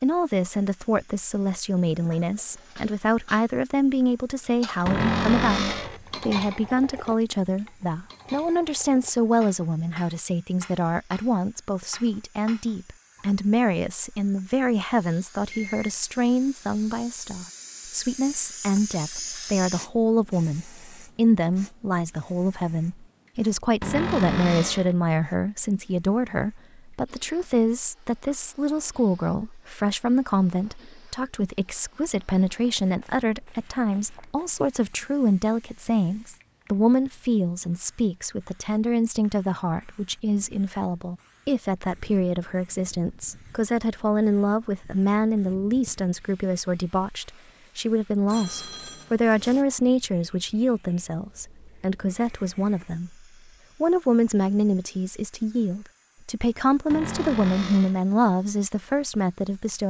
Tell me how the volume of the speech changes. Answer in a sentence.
The loudness of the speech stays about the same.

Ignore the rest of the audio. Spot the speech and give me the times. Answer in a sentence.
The speech can be heard from 0.0 to 53.1 s and from 53.8 to 59.8 s.